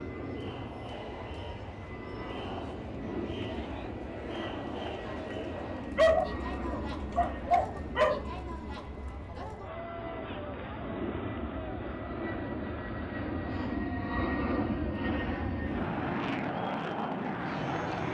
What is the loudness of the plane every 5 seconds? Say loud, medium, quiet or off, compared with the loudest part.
medium, medium, loud, loud.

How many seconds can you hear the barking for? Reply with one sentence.
The barking can be heard for 2 seconds in total.